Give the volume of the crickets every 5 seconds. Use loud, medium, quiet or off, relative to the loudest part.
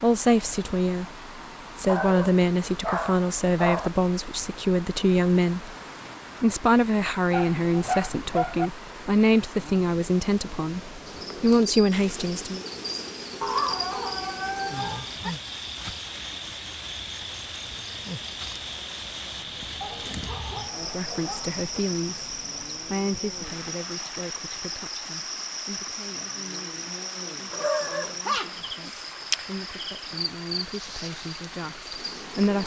off, off, loud, loud, loud, loud, loud.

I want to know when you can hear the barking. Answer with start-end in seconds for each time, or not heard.
1.9-3.9, 7.3-8.7, 13.4-15.3, 19.8-21.6, 27.5-29.1.